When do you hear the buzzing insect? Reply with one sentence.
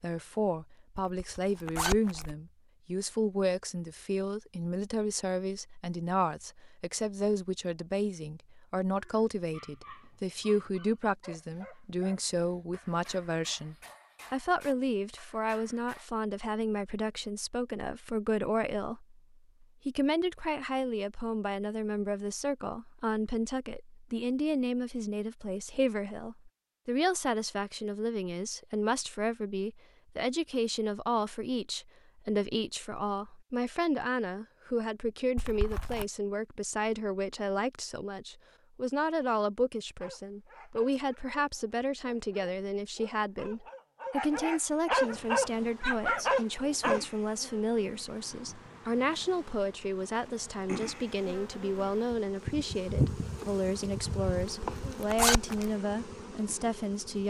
You can hear the buzzing insect from 45.0 to 57.2 s.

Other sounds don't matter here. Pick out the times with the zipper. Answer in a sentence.
You can hear the zipper from 0.9 to 2.4 s, from 35.4 to 36.0 s and from 54.4 to 55.7 s.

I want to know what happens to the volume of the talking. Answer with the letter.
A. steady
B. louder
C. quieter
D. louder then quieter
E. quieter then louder
A.